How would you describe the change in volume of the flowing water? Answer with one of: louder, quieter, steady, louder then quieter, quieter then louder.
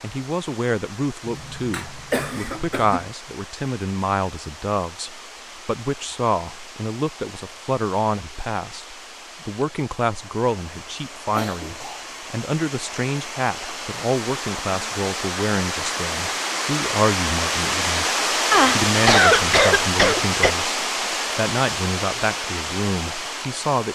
louder.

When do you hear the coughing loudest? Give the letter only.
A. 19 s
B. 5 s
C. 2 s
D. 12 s
A.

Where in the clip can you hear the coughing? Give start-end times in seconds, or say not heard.
1.2-3.0, 11.3-12.1, 18.5-20.6.